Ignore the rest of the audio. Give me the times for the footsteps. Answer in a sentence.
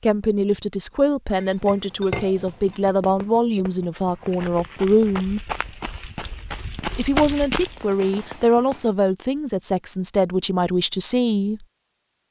You can hear the footsteps from 4.0 to 7.8 s.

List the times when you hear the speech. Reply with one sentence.
You can hear the speech from 0.0 to 5.4 s and from 7.0 to 11.7 s.